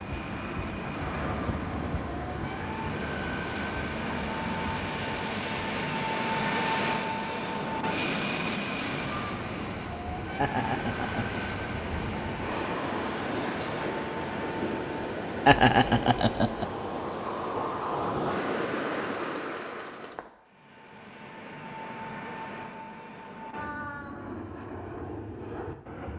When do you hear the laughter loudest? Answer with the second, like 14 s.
16 s.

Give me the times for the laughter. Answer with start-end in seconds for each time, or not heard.
10.3-11.4, 15.4-16.6.